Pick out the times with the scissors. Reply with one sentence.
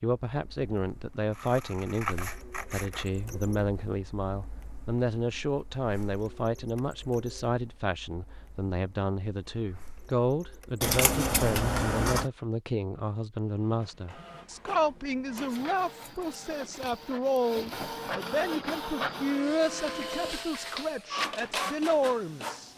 You can hear the scissors from 1.3 to 3.0 s, from 10.8 to 12.2 s and from 15.3 to 16.4 s.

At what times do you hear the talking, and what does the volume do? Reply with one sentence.
The talking can be heard from 0.0 to 22.7 s, at a steady volume.